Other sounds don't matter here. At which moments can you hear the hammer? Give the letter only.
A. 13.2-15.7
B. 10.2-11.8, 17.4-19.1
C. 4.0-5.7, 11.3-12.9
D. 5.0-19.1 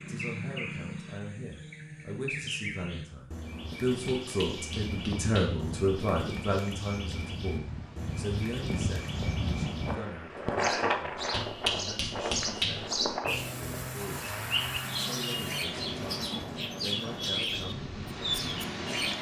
C.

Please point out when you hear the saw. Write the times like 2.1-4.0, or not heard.
13.2-15.7.